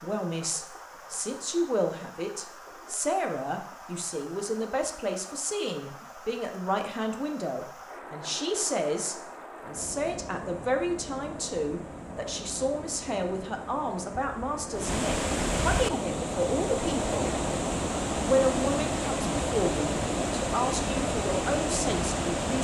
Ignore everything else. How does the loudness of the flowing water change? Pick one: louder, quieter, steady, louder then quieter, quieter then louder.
louder.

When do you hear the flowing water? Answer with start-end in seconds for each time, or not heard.
0.0-22.5.